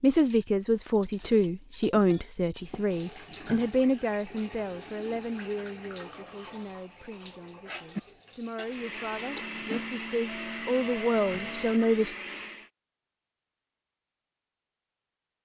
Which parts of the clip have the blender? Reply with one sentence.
The blender can be heard from 8.6 to 12.7 s.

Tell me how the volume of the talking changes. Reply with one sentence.
The loudness of the talking goes down, then up.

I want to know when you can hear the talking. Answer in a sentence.
The talking can be heard from 0.0 to 12.2 s.